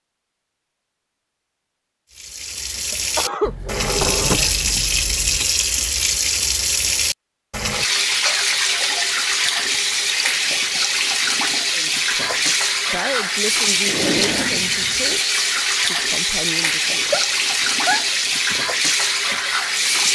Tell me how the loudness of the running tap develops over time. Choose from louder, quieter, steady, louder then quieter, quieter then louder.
steady.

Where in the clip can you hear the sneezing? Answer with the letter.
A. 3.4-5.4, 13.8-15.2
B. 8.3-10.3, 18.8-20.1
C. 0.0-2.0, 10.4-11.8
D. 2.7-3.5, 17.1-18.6
D.